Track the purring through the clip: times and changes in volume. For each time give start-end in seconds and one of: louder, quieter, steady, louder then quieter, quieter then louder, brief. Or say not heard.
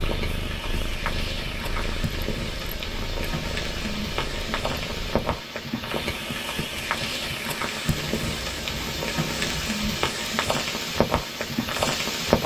0.0-5.3 steady
7.8-9.7 brief.